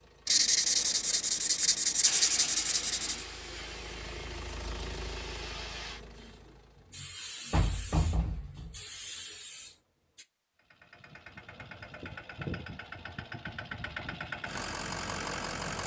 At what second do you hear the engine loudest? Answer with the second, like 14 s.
15 s.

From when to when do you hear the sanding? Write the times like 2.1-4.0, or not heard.
0.2-3.2.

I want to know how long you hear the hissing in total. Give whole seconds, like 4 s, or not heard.
8 s.